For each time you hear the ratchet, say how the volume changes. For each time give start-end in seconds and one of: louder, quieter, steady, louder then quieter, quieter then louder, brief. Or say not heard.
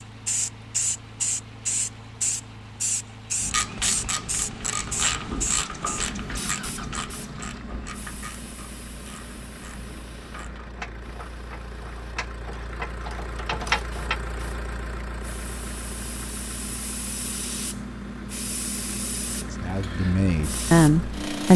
3.4-14.2 quieter then louder.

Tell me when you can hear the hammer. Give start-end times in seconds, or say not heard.
not heard.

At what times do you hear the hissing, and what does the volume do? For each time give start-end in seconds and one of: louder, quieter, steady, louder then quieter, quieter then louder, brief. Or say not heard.
0.0-21.5 quieter then louder.